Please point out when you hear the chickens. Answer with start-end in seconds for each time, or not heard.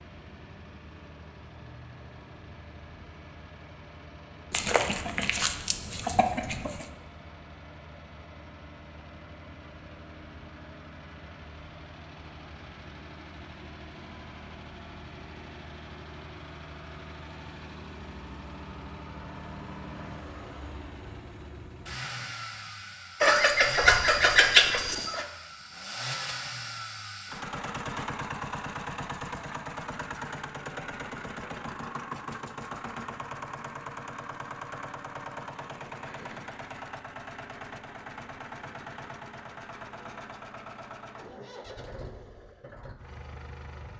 4.5-6.8, 23.2-25.2.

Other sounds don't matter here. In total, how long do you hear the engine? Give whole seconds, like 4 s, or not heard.
44 s.